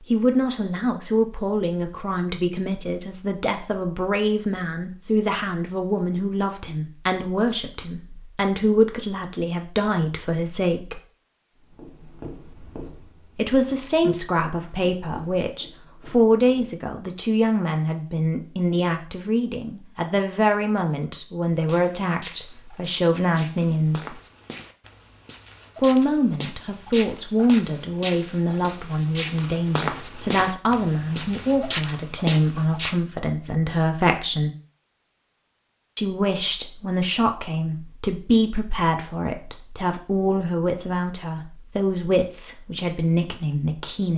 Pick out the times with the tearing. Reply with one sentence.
The tearing can't be heard in this clip.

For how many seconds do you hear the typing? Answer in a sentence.
You can't hear the typing here.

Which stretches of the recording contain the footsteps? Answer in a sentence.
The footsteps can be heard from 21.6 to 33.0 s.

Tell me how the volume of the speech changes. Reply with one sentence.
The loudness of the speech stays about the same.